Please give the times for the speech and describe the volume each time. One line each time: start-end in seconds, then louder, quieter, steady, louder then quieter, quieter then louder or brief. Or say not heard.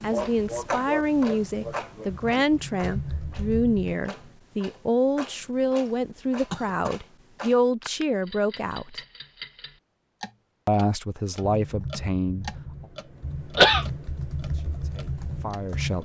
0.0-9.0 steady
10.7-12.5 brief
14.4-16.0 brief.